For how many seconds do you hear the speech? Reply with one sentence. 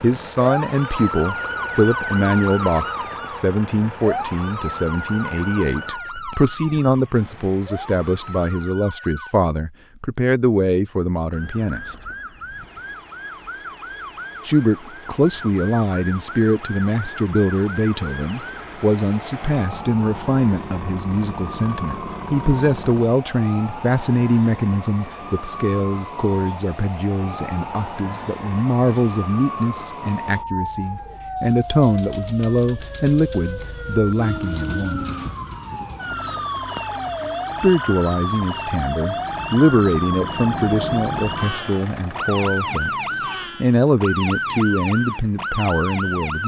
The speech can be heard for 41 seconds in total.